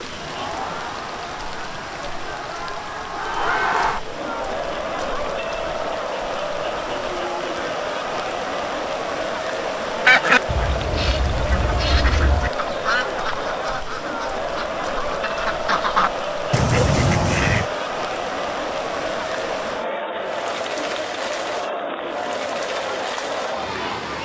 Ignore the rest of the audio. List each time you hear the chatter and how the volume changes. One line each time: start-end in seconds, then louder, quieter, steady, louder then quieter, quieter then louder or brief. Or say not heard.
0.0-24.2 steady.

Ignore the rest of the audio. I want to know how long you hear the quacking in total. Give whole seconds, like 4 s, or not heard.
8 s.